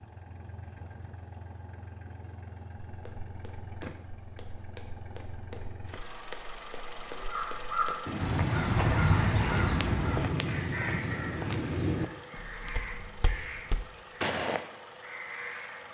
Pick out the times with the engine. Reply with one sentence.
You can hear the engine from 0.0 to 15.8 s.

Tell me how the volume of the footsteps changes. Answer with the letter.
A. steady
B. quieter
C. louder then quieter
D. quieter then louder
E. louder
C.